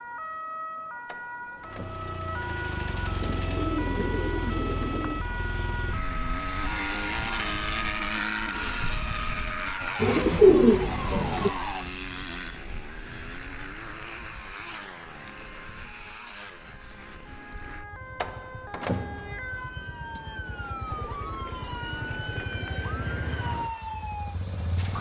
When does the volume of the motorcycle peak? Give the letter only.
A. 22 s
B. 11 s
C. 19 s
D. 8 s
D.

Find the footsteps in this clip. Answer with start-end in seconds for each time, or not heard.
not heard.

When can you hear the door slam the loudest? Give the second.
19 s.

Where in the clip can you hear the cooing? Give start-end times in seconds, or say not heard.
3.2-5.2, 9.9-11.5, 20.9-22.6.